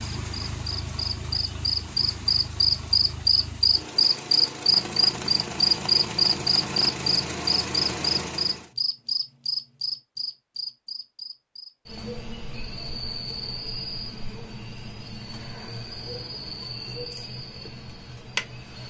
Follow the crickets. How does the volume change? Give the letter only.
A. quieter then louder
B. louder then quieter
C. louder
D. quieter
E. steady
D.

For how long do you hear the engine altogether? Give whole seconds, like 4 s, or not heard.
9 s.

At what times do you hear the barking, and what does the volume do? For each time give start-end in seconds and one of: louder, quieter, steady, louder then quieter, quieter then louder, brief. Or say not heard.
not heard.